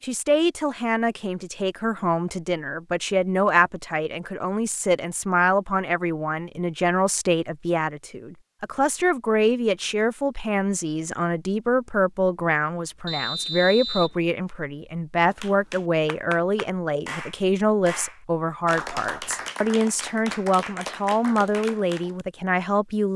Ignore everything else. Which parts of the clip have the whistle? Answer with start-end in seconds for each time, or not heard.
13.1-14.2.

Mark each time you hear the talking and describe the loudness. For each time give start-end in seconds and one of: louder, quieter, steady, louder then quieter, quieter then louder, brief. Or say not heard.
0.0-23.1 steady.